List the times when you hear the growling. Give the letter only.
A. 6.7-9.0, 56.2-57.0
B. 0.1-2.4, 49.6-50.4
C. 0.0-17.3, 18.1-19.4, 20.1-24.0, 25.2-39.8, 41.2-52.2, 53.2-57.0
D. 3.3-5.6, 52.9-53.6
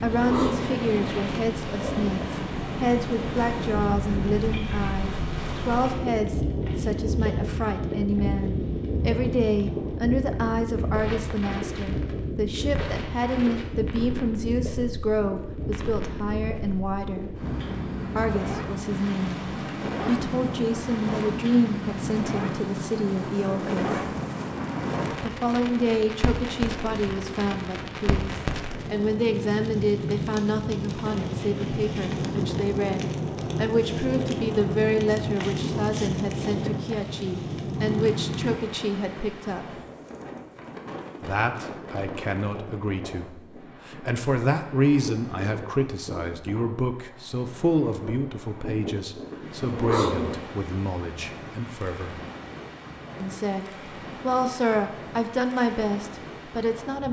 B.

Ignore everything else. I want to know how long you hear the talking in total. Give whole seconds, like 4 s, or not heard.
52 s.